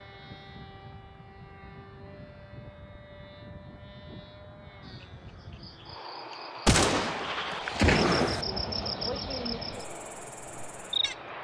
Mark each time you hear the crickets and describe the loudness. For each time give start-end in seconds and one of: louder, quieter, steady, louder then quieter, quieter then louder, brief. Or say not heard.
4.8-11.2 louder then quieter.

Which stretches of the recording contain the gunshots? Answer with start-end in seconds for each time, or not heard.
6.7-8.4.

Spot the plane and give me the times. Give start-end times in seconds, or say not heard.
0.0-11.4.